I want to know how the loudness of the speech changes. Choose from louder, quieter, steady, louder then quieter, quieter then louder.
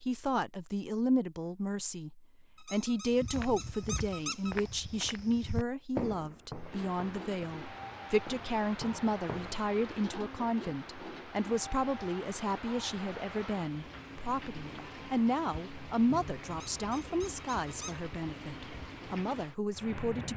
steady.